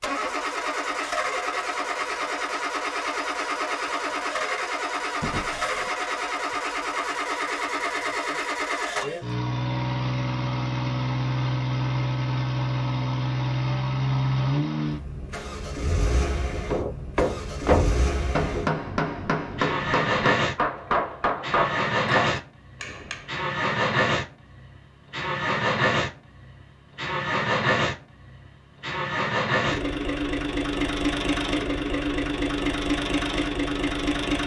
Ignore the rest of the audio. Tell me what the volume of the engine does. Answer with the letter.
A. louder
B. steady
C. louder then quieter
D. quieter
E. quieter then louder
B.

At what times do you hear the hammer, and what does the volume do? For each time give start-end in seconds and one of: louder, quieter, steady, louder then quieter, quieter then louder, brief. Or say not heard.
16.7-23.3 quieter.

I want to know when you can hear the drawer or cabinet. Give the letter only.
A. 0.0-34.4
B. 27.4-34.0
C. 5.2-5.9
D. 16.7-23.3
C.